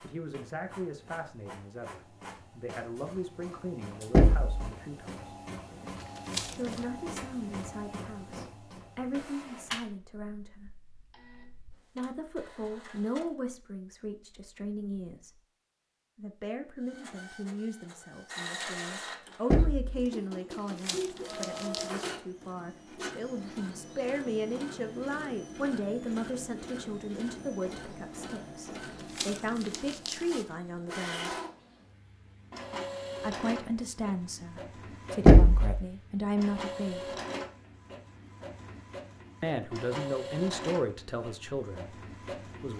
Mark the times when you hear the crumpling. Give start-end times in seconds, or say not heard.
6.0-6.8, 20.5-22.1, 28.8-30.5.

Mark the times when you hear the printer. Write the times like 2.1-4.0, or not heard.
0.0-13.4, 16.9-42.7.